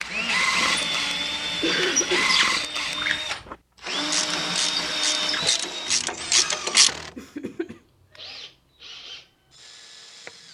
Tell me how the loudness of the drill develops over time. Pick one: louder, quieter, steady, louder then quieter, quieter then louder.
quieter.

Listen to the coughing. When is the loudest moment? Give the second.
2 s.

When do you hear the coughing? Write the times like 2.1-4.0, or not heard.
1.6-2.4, 6.7-8.2.